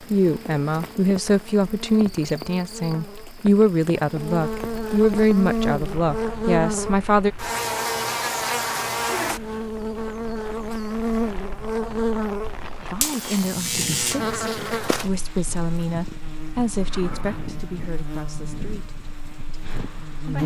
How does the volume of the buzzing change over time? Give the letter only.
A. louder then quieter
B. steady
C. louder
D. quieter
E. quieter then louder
A.